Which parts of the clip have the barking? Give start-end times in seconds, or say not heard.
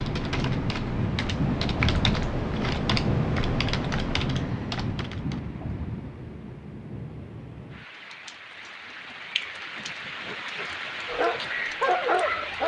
11.1-12.6.